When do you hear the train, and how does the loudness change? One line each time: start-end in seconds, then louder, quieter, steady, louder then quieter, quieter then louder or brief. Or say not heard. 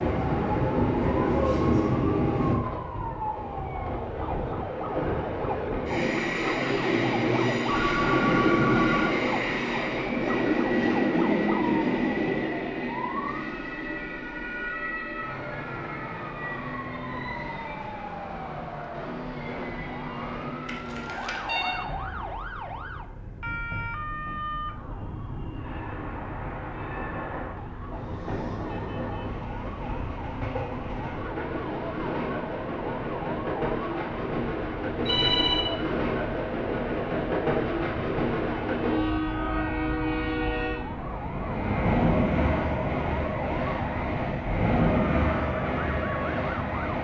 0.0-46.9 quieter then louder.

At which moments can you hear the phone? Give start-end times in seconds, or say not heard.
7.7-9.1, 20.6-21.8, 35.0-35.6.